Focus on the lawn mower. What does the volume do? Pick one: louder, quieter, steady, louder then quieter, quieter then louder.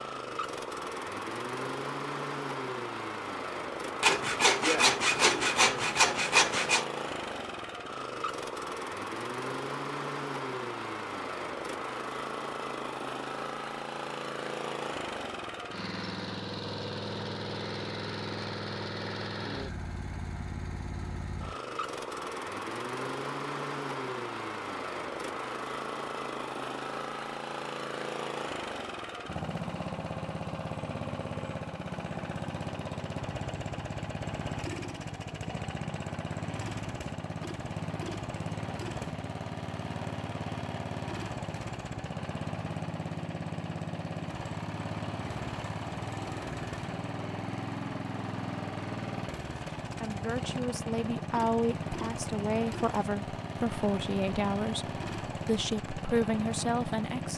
steady.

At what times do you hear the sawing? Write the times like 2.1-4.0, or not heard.
4.0-6.8.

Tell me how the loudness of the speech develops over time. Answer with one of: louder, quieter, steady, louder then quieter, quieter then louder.
steady.